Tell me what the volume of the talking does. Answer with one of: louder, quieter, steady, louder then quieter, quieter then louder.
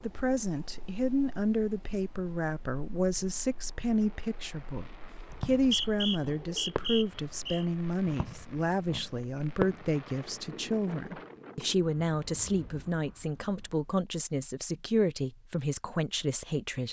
steady.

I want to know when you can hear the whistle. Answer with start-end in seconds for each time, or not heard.
5.5-7.7.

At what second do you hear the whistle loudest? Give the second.
6 s.